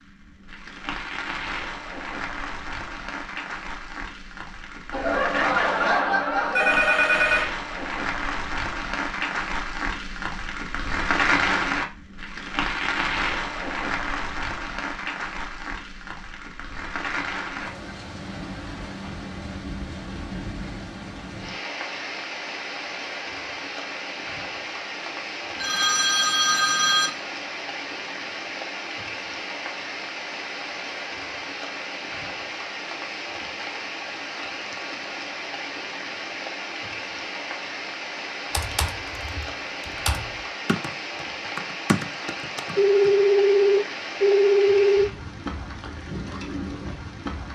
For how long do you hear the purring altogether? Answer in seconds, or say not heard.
not heard.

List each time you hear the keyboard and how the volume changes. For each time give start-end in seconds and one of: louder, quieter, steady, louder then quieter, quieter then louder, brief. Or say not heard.
38.5-43.1 louder then quieter.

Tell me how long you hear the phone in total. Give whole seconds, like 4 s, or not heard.
6 s.